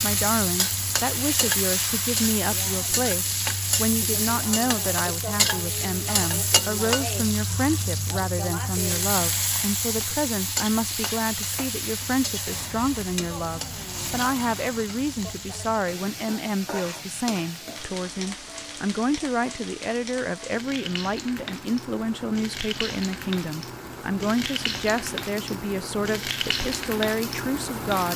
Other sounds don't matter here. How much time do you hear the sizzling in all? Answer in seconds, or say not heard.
28 s.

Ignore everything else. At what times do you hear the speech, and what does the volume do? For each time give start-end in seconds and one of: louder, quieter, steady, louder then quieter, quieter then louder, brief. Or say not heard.
0.0-28.1 steady.